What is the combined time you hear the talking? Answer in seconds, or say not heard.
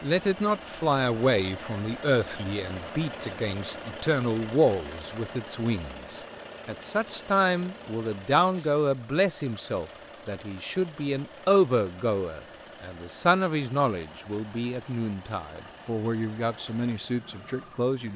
18 s.